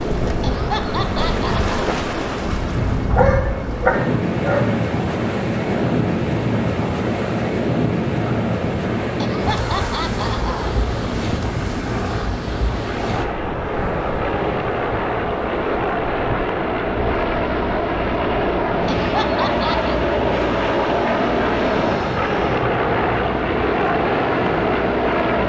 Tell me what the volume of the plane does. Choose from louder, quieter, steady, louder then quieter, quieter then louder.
louder.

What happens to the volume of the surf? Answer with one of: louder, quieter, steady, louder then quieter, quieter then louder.
quieter.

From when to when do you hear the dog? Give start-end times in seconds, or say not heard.
3.1-4.8.